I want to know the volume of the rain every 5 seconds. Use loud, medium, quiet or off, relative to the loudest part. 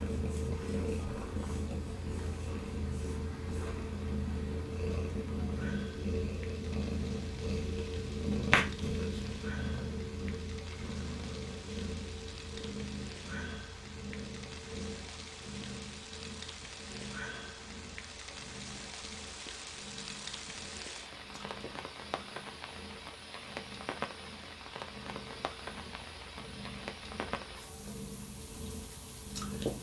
medium, medium, medium, loud, loud, loud.